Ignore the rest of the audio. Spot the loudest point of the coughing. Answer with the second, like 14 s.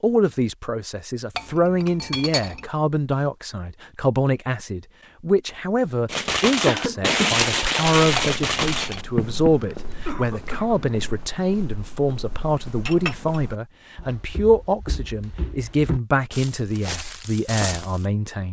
7 s.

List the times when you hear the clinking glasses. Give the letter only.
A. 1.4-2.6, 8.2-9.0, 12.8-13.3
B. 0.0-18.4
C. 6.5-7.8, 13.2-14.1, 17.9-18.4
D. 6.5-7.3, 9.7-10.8
A.